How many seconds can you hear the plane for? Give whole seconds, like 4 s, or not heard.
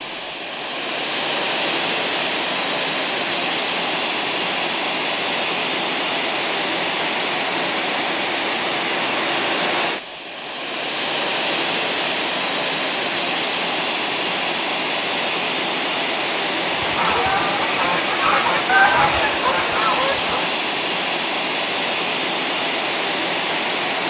24 s.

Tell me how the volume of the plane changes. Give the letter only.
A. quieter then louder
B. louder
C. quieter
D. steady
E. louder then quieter
D.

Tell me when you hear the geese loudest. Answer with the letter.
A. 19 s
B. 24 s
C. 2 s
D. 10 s
A.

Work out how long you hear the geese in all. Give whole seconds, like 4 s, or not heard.
4 s.